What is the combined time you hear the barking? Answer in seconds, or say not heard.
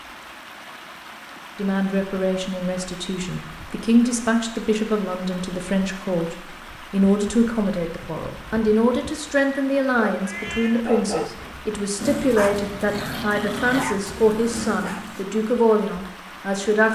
5 s.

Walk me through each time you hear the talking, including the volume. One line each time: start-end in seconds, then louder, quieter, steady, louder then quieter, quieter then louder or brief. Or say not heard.
1.6-16.9 steady.